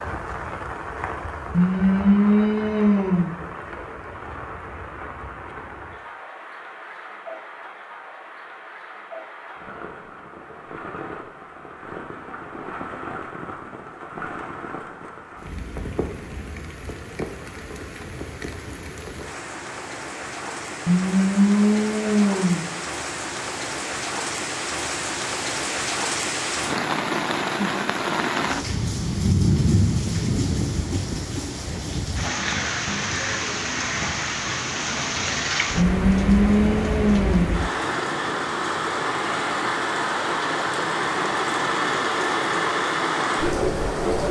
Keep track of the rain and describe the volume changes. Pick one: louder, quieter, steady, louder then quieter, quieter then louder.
louder.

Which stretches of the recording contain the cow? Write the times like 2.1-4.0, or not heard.
1.5-3.4, 20.9-22.6, 35.8-37.5.